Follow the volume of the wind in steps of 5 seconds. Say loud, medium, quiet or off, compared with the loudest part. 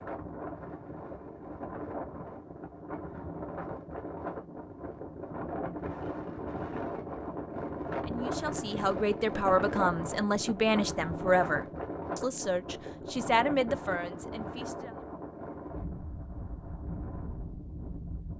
medium, loud, loud, medium.